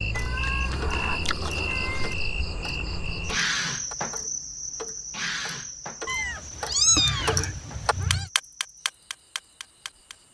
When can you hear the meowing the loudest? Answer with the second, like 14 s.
7 s.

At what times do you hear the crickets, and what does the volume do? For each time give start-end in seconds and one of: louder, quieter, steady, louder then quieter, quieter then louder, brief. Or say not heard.
0.0-10.2 quieter.